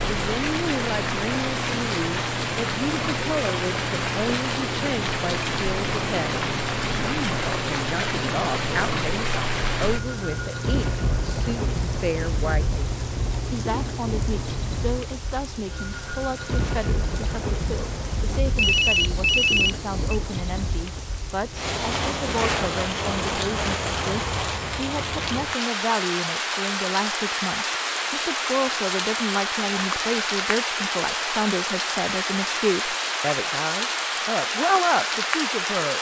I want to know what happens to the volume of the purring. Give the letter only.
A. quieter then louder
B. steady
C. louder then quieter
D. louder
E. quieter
B.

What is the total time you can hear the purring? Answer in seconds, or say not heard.
15 s.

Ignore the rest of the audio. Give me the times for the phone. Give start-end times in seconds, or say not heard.
18.6-19.9.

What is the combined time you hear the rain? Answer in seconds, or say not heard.
36 s.